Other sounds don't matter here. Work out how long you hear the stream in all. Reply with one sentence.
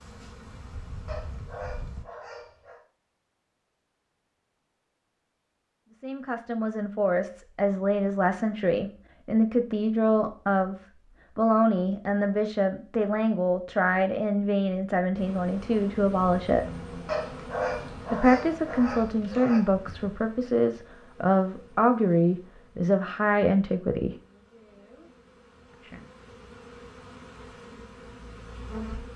The stream can't be heard in this clip.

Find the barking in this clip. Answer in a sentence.
You can hear the barking from 1.1 to 2.8 s and from 17.1 to 19.6 s.